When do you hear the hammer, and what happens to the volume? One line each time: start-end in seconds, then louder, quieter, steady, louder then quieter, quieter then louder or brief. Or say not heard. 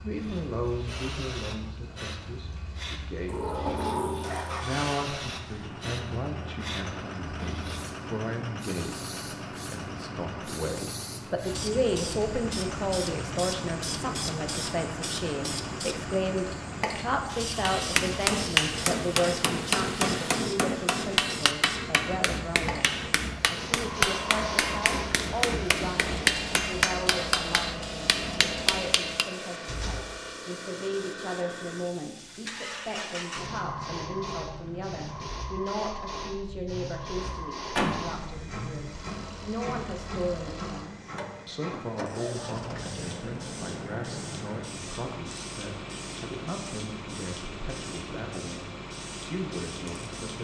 17.6-29.2 steady.